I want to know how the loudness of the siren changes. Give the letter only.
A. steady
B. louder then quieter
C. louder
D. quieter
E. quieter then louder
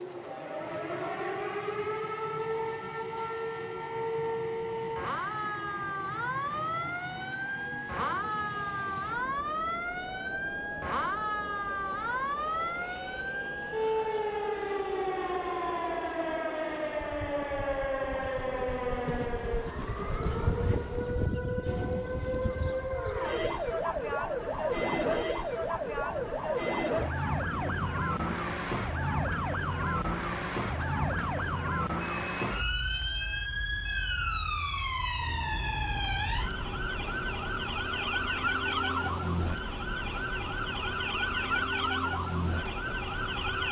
A.